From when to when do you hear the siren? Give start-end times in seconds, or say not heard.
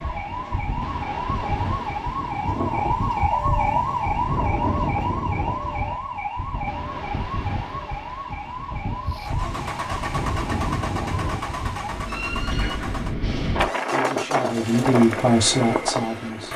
0.0-12.8.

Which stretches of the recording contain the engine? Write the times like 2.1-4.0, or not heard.
9.1-16.5.